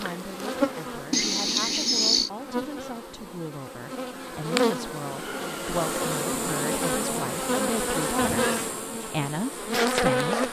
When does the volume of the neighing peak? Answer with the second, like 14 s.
2 s.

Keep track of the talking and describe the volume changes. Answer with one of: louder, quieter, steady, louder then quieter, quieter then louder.
louder.